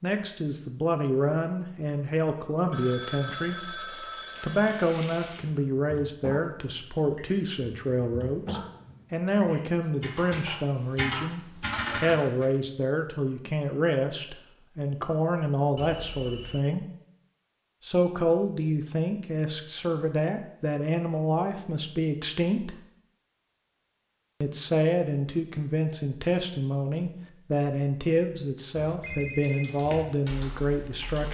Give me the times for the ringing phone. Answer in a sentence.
The ringing phone can be heard from 2.7 to 4.7 s, from 15.8 to 16.6 s and from 28.8 to 29.8 s.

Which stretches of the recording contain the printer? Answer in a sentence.
You can't hear the printer here.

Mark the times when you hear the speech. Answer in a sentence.
You can hear the speech from 0.0 to 3.8 s, from 4.4 to 16.9 s, from 17.8 to 22.8 s and from 24.4 to 31.2 s.